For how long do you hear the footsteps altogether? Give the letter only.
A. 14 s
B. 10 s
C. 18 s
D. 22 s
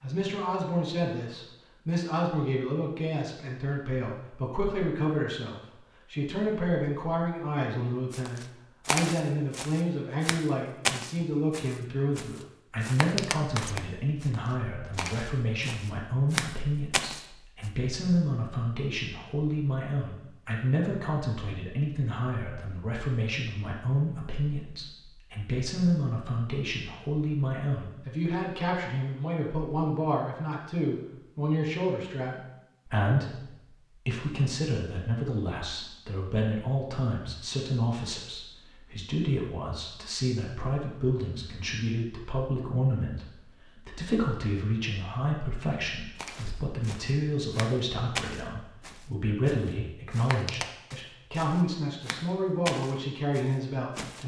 C.